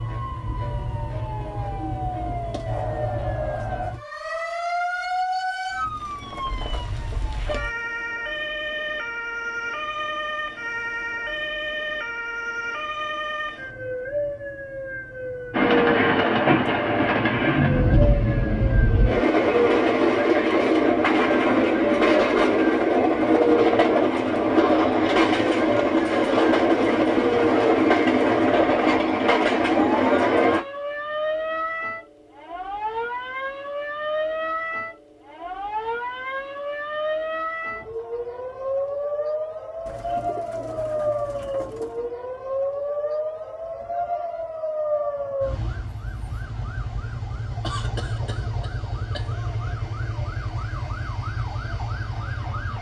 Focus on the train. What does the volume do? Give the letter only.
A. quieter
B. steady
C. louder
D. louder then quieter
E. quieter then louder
B.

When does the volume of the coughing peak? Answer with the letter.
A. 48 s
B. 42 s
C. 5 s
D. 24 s
A.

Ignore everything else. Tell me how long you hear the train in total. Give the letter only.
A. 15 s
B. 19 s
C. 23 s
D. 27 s
A.